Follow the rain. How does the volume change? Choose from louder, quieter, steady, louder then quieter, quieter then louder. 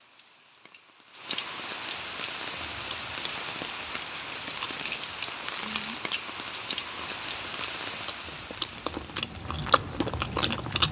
steady.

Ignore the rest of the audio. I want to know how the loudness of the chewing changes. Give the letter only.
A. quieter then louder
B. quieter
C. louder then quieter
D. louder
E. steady
D.